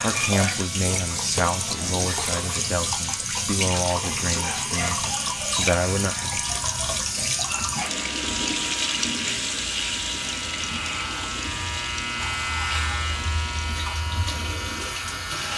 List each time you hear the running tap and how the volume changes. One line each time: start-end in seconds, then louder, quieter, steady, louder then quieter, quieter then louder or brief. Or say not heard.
0.0-15.5 quieter.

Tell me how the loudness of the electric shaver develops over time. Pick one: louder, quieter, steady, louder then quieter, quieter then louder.
louder.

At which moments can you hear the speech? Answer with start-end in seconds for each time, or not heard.
0.0-6.5.